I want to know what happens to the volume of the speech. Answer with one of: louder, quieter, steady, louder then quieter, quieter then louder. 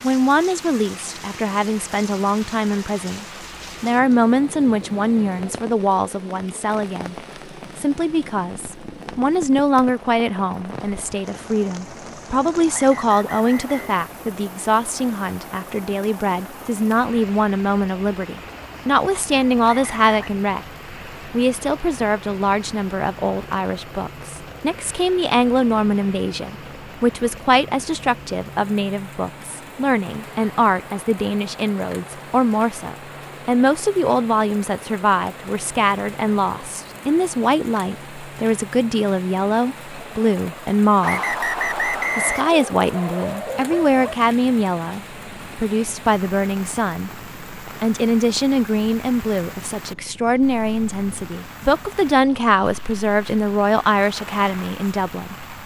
steady.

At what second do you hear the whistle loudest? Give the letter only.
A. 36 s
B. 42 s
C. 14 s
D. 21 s
B.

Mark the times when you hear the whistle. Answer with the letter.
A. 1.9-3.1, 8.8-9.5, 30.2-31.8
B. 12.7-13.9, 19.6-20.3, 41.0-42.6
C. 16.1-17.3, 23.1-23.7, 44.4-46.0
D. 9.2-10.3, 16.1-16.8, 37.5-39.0
B.